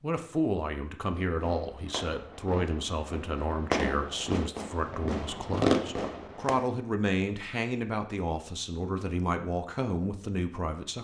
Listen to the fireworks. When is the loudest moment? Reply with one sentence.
The volume of the fireworks peaks at 6 seconds.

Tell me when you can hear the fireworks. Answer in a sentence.
You can hear the fireworks from 1.1 to 6.6 s.